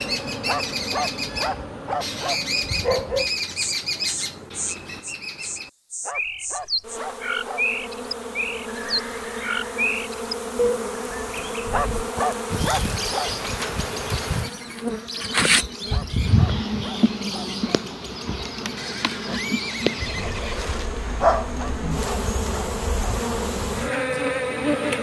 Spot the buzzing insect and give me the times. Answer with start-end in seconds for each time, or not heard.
0.0-24.9.